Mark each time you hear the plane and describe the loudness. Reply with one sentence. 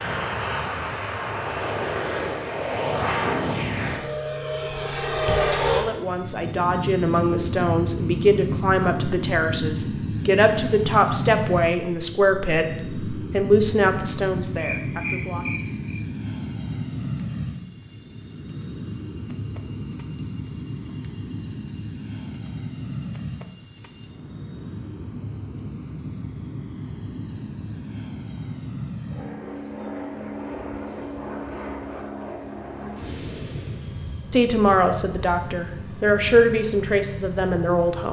The plane can be heard from 0.0 to 38.0 s, getting quieter.